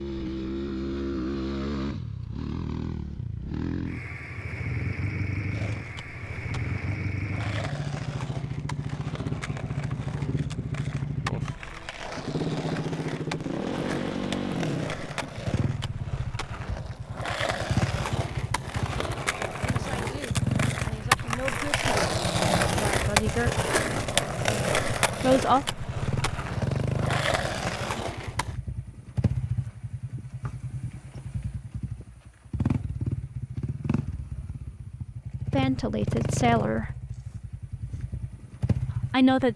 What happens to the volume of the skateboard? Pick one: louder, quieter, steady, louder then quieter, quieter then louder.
louder.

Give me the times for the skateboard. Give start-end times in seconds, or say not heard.
5.5-28.6.